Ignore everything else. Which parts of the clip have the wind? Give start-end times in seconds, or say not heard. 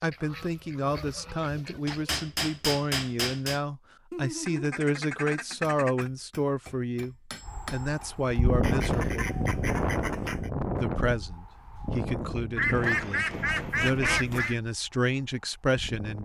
7.5-16.2.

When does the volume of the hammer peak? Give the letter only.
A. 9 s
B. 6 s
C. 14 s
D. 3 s
D.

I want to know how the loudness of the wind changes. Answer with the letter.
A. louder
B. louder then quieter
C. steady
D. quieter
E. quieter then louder
D.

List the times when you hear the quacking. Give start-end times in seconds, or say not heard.
0.1-2.1, 4.1-6.1, 8.6-10.5, 12.6-14.6.